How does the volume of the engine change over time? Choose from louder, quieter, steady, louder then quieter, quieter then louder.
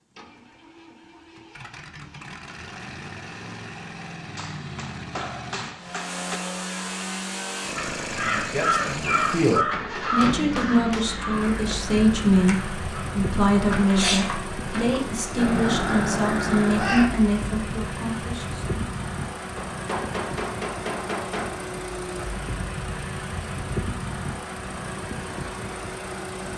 louder.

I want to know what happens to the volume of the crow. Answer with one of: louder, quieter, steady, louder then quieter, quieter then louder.
quieter then louder.